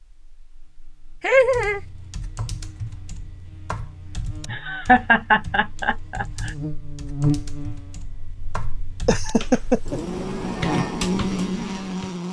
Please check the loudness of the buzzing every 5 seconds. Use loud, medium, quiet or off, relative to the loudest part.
quiet, medium, loud.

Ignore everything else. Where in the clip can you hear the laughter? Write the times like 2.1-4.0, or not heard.
1.2-1.8, 4.5-6.5, 9.1-9.9.